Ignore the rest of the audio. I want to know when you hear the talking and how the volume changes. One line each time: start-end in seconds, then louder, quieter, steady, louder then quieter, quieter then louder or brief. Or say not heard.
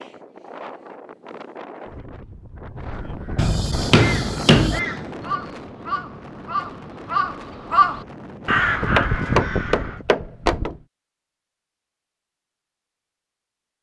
not heard.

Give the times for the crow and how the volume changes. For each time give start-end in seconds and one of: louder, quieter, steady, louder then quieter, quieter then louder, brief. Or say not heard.
2.8-10.1 louder.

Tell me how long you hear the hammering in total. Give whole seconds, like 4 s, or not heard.
3 s.